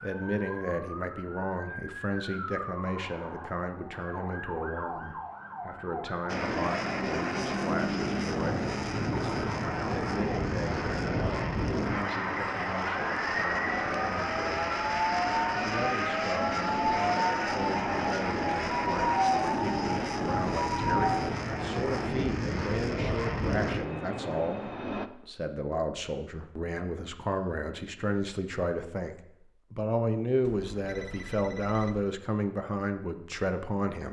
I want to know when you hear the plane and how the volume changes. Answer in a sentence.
You can hear the plane from 6.2 to 25.1 s, at a steady volume.